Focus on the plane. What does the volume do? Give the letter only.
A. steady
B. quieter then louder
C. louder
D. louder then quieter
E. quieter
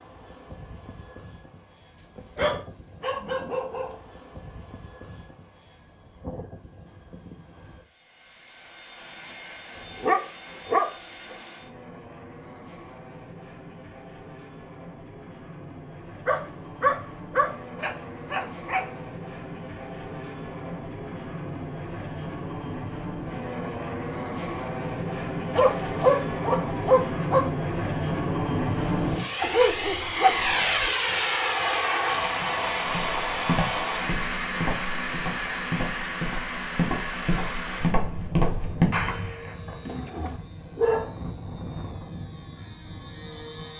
D.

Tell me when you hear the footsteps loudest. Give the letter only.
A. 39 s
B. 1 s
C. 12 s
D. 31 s
A.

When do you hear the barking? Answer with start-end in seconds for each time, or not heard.
2.1-4.0, 9.9-10.9, 16.2-18.9, 25.5-27.5, 29.4-30.9, 39.6-41.1.